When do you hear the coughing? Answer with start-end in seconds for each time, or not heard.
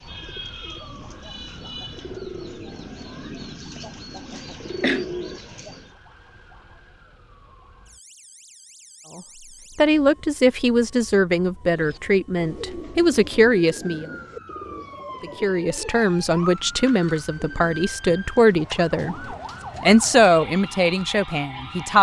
4.3-5.0.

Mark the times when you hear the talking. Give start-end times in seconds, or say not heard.
9.2-14.1, 15.2-21.9.